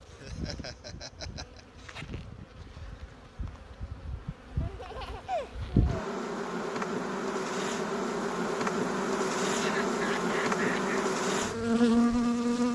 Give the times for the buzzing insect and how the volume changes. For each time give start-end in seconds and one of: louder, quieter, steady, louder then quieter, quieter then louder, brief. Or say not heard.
0.0-12.7 louder.